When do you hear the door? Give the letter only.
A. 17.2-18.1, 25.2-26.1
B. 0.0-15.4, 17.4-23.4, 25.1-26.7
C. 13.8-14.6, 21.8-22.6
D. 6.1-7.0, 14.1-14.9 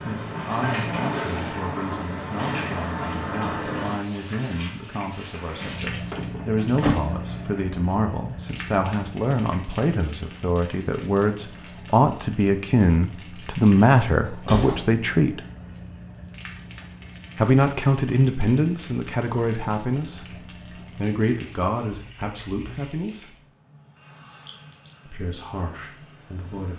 D.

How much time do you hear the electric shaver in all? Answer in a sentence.
The electric shaver can't be heard in this clip.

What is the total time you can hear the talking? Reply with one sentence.
The talking can be heard for 23 seconds in total.